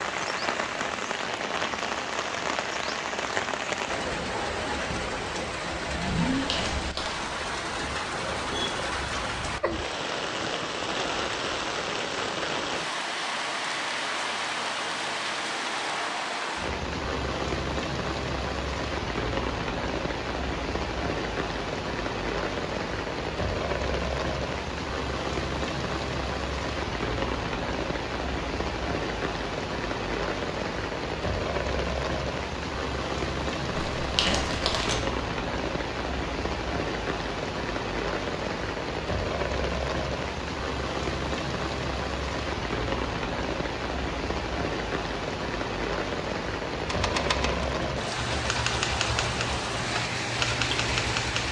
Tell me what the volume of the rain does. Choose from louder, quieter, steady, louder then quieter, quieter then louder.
steady.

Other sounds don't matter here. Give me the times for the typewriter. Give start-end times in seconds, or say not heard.
46.9-51.4.